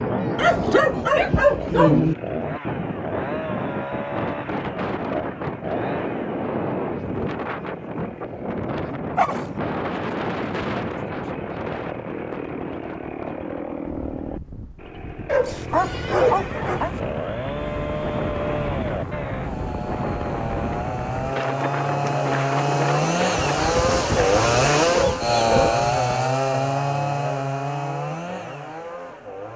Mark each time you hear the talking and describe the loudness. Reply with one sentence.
You can't hear the talking here.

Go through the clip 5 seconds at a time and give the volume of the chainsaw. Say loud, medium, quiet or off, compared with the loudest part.
medium, quiet, medium, medium, loud, loud.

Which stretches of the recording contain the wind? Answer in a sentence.
You can hear the wind from 0.0 to 25.0 s.